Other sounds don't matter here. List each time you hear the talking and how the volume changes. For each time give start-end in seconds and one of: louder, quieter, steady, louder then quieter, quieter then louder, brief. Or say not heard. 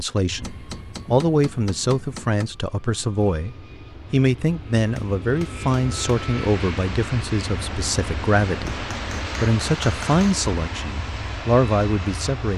0.0-12.5 steady.